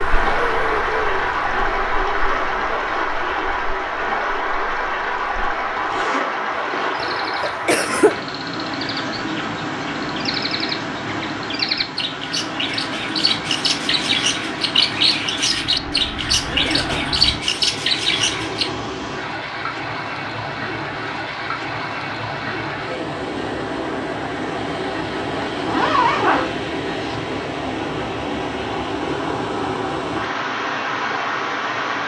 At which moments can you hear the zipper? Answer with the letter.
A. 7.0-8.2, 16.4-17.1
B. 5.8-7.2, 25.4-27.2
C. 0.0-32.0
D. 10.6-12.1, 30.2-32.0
B.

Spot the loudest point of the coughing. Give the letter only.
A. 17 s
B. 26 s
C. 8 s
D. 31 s
C.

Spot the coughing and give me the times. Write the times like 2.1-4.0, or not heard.
7.0-8.2, 16.4-17.1.